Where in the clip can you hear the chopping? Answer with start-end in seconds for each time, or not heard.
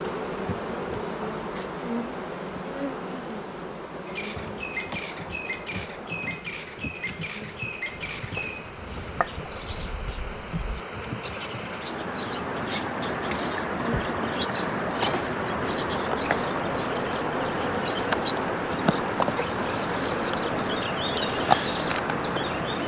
7.9-9.8.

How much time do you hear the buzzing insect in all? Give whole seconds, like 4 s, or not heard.
23 s.